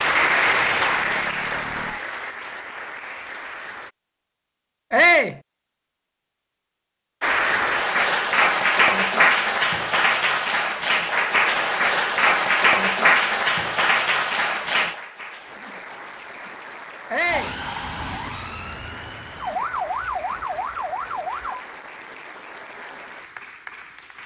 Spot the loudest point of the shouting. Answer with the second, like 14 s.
5 s.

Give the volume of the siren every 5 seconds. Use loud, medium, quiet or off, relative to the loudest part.
quiet, off, off, loud, loud.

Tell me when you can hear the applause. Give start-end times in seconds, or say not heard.
0.0-3.9, 7.2-24.2.